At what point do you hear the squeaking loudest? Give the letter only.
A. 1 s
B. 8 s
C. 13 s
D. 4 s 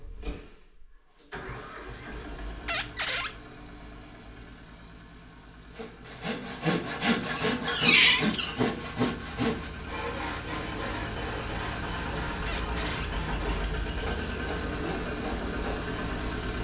B.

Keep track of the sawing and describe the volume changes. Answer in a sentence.
The volume of the sawing goes down.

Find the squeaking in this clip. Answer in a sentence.
The squeaking can be heard from 2.6 to 3.3 s, from 7.5 to 8.6 s and from 12.4 to 13.1 s.